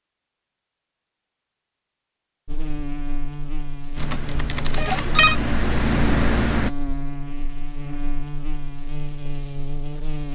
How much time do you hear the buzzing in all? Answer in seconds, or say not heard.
8 s.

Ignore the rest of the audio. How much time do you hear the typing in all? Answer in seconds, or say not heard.
3 s.